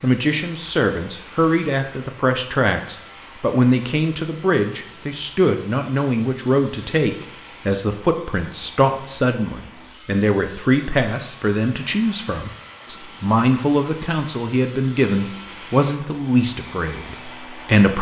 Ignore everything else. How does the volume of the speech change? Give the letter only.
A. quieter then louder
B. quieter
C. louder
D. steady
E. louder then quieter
D.